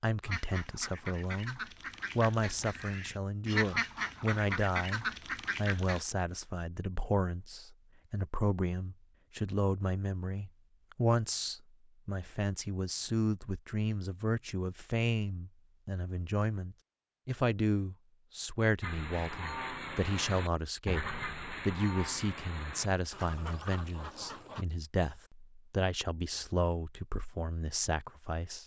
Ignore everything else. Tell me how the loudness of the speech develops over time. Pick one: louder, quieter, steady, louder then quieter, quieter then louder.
steady.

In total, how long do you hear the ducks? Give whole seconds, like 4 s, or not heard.
12 s.